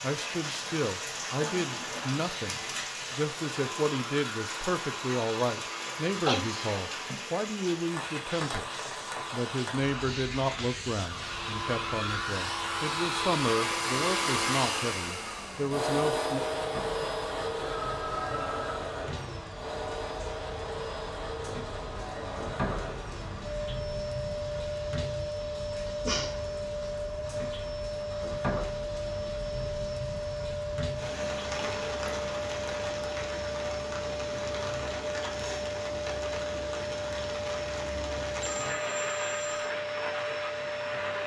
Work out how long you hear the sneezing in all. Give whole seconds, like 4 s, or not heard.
2 s.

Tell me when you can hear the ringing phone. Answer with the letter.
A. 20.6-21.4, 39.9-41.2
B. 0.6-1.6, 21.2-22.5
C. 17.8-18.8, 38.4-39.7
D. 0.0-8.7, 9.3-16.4
C.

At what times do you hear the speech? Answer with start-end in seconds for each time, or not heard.
0.0-8.7, 9.3-16.4.